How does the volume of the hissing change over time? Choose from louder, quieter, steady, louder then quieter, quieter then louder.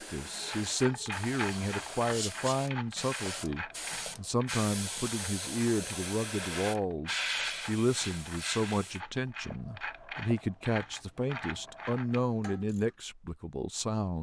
louder.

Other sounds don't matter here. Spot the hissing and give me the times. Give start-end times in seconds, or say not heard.
0.0-9.0.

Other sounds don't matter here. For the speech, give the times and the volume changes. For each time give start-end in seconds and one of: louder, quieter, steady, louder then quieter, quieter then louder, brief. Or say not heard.
0.1-14.1 steady.